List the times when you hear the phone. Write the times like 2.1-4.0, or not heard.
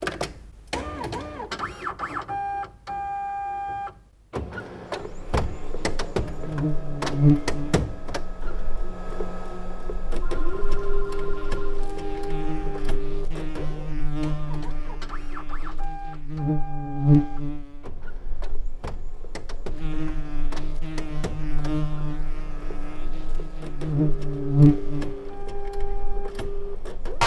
10.2-11.8.